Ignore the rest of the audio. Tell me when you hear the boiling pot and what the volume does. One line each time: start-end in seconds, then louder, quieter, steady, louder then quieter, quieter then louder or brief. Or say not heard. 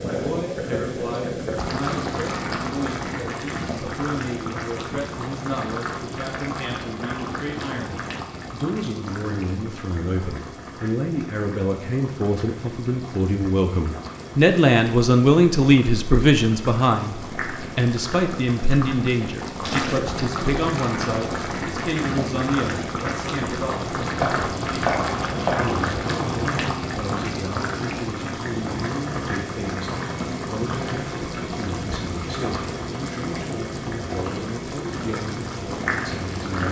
0.0-36.6 quieter then louder.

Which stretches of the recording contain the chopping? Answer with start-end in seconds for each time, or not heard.
24.2-26.0.